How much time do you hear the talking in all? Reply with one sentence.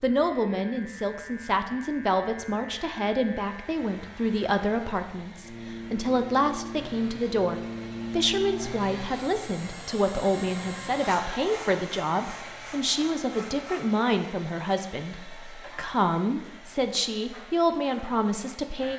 The talking can be heard for 19 seconds in total.